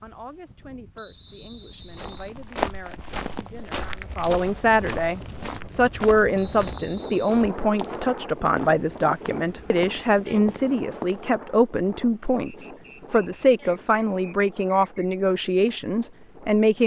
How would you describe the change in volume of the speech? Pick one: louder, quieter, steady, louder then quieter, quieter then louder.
louder.